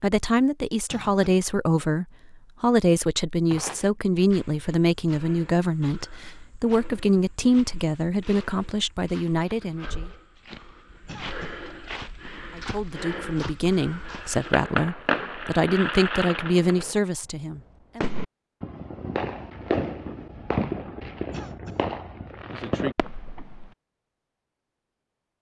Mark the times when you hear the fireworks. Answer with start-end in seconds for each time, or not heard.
14.1-16.9, 17.6-23.7.